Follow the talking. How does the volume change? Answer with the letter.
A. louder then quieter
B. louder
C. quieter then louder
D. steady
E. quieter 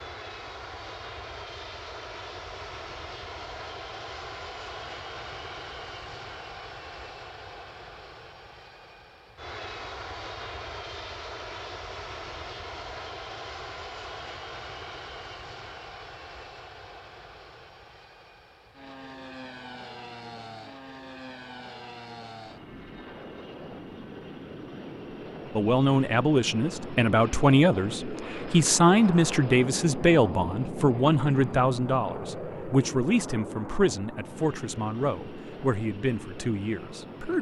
E.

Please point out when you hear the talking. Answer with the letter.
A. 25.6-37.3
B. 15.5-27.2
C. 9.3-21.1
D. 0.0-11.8
A.